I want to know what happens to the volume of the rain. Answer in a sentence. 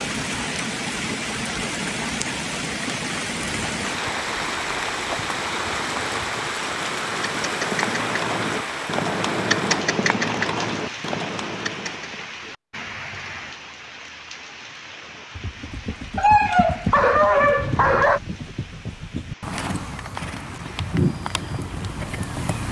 The loudness of the rain goes down.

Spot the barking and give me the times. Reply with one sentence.
The barking can be heard from 16.1 to 18.2 s.